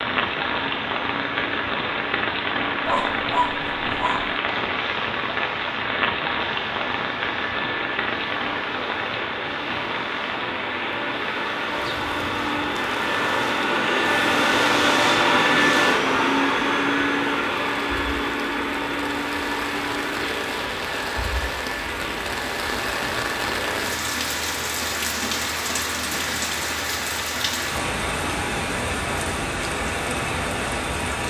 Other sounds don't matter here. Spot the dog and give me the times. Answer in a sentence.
The dog can be heard from 2.9 to 4.4 s.